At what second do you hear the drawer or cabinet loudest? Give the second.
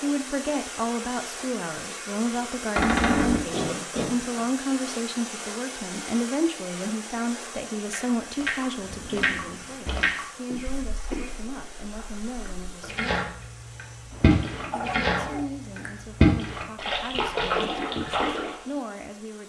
3 s.